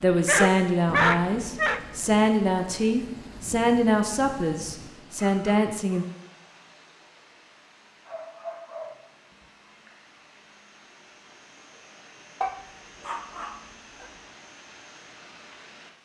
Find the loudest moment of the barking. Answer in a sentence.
The volume of the barking peaks at 1 second.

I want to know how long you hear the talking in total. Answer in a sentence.
The talking can be heard for 6 seconds in total.